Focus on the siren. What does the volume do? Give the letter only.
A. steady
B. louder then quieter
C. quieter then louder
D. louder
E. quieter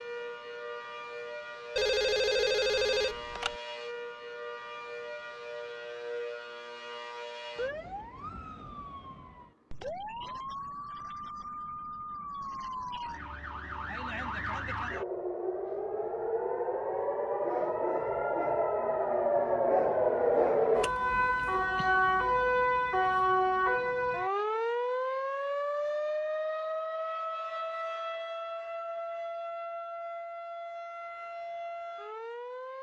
B.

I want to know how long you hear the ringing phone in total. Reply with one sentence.
The ringing phone can be heard for 2 seconds in total.